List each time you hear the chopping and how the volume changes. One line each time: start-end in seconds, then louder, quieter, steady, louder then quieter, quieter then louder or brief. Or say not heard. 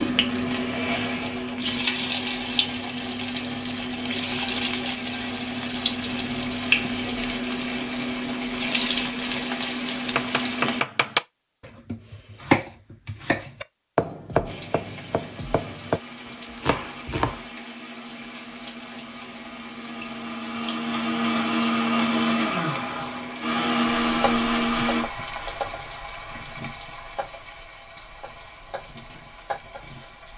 10.1-17.4 quieter then louder.